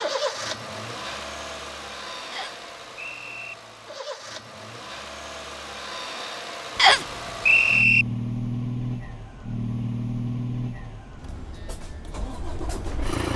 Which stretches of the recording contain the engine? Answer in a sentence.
The engine can be heard from 0.0 to 13.3 s.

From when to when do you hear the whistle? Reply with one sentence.
The whistle can be heard from 2.3 to 3.5 s and from 6.8 to 8.1 s.